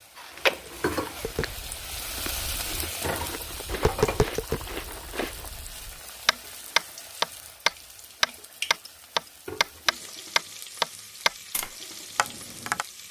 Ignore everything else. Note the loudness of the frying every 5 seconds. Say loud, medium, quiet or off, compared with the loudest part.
loud, medium, medium.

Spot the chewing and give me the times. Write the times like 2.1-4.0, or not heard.
0.1-5.5.